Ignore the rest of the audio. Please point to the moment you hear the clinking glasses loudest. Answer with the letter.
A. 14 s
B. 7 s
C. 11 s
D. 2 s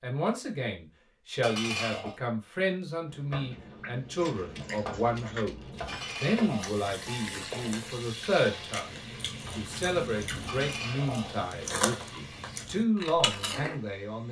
D.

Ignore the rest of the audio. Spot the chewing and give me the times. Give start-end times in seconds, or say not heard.
4.2-13.8.